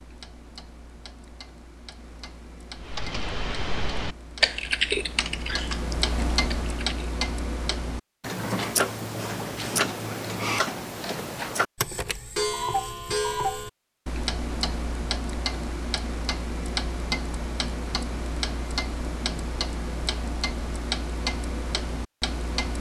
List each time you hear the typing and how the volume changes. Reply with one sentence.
The typing can be heard from 2.8 to 7.0 s, getting louder then quieter.